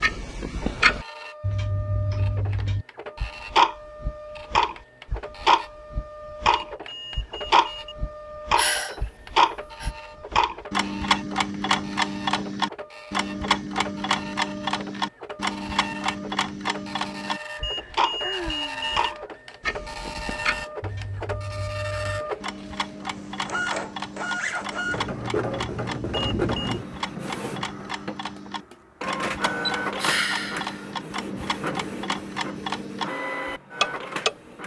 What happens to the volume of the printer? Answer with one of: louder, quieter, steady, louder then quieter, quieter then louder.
louder.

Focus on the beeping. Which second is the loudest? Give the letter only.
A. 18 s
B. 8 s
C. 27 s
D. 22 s
A.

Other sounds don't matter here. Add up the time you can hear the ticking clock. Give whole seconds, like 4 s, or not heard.
34 s.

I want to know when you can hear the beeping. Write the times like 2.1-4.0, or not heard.
6.7-8.0, 17.6-19.1, 26.1-26.8.